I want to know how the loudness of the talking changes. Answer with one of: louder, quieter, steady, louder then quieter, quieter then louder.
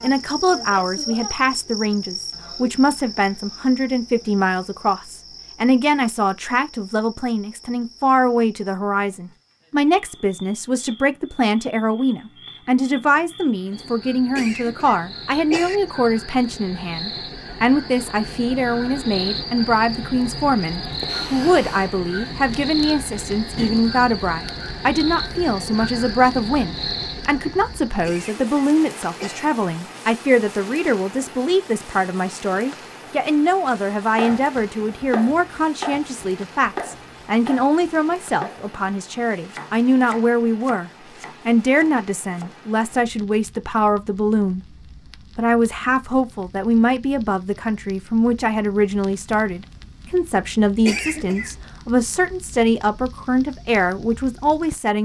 steady.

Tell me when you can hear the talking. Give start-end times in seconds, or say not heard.
0.0-54.9.